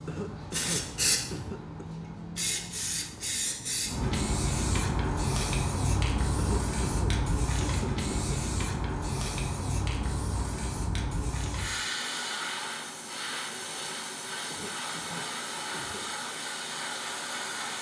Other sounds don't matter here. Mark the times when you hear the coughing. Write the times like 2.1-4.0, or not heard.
0.1-1.9, 6.3-8.3, 14.5-16.1.